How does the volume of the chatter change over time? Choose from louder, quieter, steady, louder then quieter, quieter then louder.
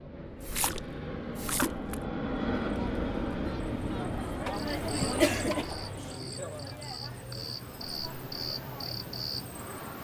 louder then quieter.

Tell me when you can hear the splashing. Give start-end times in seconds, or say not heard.
0.4-1.9.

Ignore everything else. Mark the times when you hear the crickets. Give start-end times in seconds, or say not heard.
4.5-9.9.